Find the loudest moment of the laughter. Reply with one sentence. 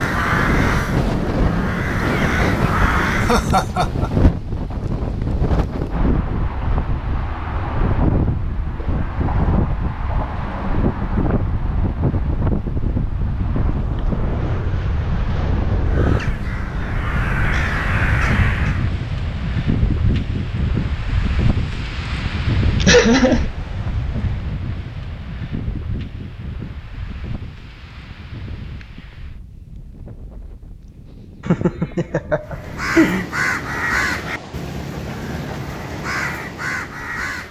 The volume of the laughter peaks at 23 seconds.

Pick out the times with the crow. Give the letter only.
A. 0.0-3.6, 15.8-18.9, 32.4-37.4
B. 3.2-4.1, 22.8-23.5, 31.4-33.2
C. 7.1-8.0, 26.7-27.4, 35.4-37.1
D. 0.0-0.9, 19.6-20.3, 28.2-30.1
A.